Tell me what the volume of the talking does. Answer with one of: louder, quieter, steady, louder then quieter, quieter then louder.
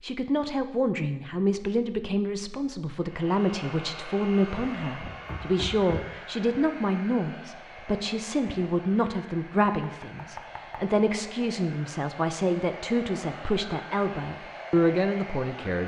steady.